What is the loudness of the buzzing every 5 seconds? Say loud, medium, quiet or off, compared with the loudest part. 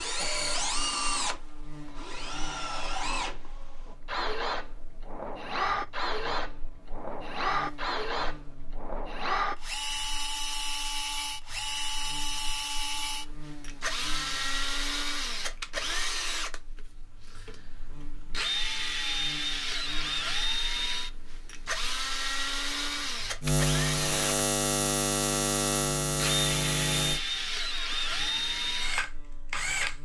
quiet, quiet, quiet, quiet, loud, loud.